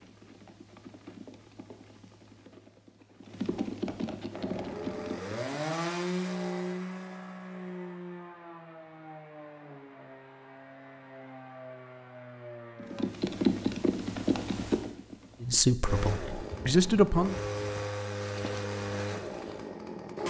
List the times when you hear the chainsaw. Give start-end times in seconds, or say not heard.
4.3-13.2, 15.8-20.2.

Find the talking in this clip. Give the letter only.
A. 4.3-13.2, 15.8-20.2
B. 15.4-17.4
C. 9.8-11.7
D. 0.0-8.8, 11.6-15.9
B.